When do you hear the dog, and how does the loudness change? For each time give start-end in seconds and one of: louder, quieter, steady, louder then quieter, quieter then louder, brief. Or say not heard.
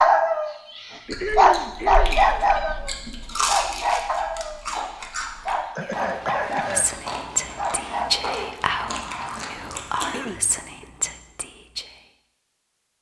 0.0-8.6 quieter.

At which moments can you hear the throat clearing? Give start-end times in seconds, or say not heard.
1.1-2.2, 5.8-6.9, 9.6-10.8.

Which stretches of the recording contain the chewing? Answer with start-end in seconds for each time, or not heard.
1.1-10.1.